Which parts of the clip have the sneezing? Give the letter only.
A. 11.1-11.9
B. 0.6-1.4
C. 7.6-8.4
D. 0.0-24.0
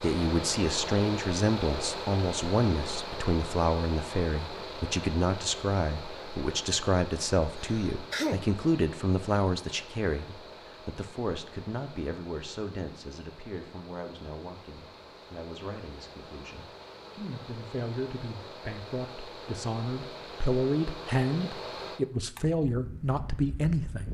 C.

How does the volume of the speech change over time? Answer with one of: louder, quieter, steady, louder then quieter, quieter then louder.
quieter then louder.